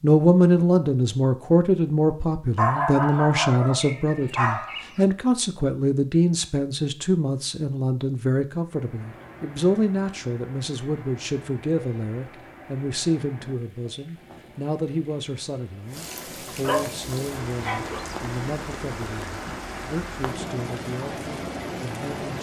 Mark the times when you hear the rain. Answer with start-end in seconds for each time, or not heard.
8.6-22.3.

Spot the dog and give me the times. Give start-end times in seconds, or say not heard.
2.5-5.0, 16.6-18.0.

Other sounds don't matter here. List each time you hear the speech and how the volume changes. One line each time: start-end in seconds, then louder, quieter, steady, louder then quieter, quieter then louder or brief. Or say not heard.
0.0-22.3 quieter.